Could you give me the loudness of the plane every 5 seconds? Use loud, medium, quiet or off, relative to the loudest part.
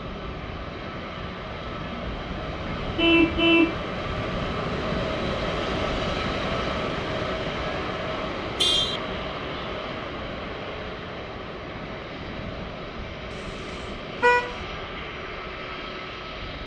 loud, loud, medium, medium.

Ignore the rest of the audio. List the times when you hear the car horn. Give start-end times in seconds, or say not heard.
3.0-3.8, 8.6-9.0, 13.3-14.6.